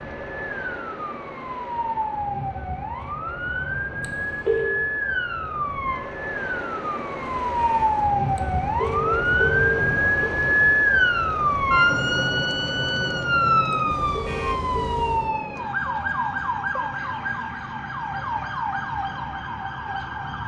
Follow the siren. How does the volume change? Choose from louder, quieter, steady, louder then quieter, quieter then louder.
louder then quieter.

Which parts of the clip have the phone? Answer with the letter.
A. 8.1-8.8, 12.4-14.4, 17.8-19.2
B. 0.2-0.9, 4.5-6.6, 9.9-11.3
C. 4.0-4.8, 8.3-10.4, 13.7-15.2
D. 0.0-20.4
C.